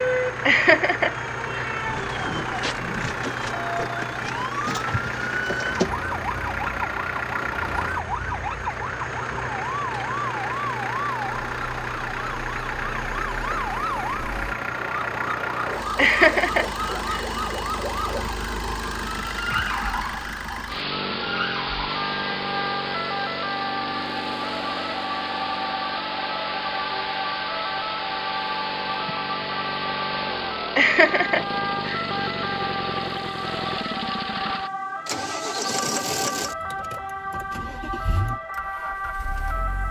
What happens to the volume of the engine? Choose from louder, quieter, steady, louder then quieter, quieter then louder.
steady.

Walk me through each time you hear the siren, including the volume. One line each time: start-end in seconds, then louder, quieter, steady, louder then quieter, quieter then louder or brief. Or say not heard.
0.0-39.8 steady.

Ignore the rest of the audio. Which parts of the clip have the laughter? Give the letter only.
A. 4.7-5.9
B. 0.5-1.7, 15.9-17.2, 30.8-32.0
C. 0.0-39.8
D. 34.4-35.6
B.